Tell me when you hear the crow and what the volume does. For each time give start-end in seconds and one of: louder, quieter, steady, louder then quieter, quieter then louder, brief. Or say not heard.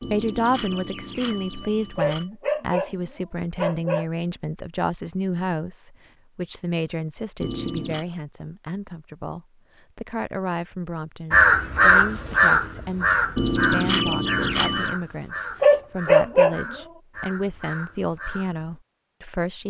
11.3-18.8 quieter.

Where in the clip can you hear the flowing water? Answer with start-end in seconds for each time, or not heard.
not heard.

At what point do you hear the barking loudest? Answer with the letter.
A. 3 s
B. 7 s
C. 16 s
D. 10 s
C.